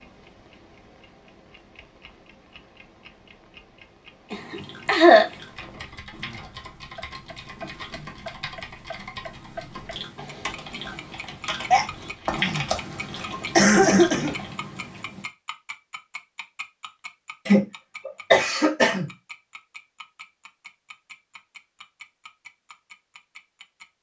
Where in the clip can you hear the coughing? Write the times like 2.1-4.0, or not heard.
4.3-5.3, 11.7-14.3, 17.4-19.1.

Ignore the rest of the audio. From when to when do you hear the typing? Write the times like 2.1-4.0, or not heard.
5.5-14.6.